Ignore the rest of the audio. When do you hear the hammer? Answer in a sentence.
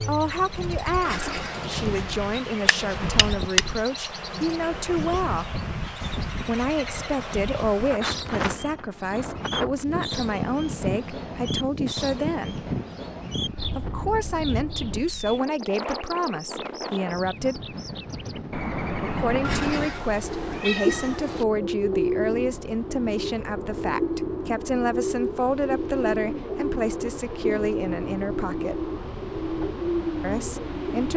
You can hear the hammer from 1.6 to 3.6 s.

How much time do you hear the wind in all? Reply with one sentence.
The wind can be heard for 31 seconds in total.